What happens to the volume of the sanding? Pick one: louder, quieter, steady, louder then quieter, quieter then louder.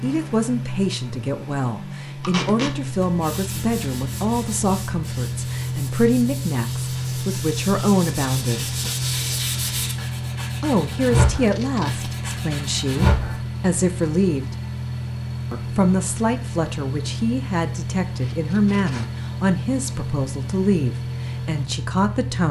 louder.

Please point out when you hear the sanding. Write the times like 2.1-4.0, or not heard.
2.9-13.4.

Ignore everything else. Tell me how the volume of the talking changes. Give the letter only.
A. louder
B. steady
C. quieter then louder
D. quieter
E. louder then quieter
B.